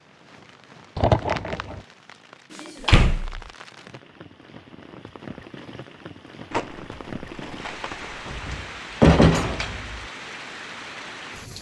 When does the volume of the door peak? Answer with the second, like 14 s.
9 s.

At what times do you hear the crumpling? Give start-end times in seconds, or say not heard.
0.9-1.8, 6.5-8.6.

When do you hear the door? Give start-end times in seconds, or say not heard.
2.6-3.4, 8.2-10.0.